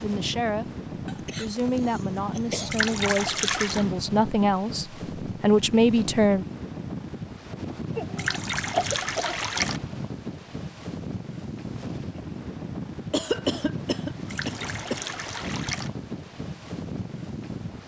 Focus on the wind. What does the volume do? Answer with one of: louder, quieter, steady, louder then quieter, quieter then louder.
steady.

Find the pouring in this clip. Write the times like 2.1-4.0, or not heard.
2.7-3.9, 8.2-9.8, 14.2-15.9.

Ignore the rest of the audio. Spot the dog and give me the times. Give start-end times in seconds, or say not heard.
not heard.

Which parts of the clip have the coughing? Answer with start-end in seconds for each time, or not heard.
1.1-2.8, 8.0-9.4, 13.1-15.0.